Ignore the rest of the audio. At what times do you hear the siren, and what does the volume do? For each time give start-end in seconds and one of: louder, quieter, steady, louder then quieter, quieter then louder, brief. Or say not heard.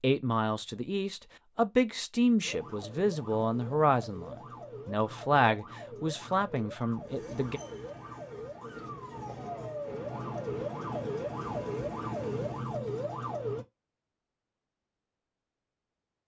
2.4-13.7 louder.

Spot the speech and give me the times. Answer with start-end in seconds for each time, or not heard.
0.0-7.6.